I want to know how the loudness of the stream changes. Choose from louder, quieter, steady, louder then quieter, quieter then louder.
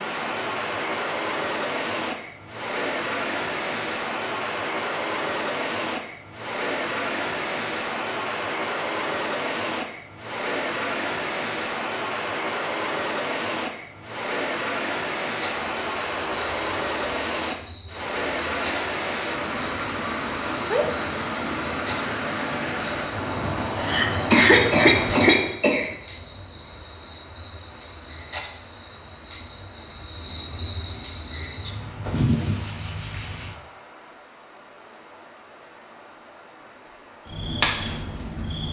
quieter.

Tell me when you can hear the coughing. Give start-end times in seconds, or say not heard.
23.8-25.9.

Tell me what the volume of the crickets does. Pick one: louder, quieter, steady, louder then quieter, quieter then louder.
louder.